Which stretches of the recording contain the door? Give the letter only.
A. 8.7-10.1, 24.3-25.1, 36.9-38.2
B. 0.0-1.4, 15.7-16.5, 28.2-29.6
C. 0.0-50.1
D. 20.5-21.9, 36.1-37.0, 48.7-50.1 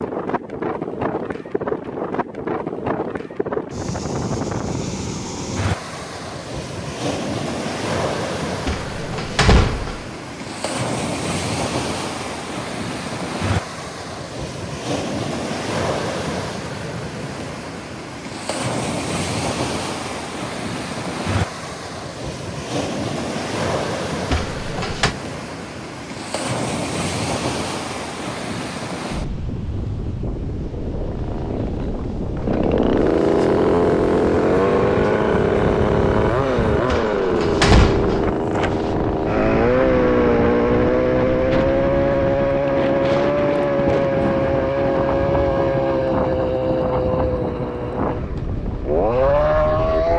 A.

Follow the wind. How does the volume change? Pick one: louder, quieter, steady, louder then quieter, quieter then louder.
steady.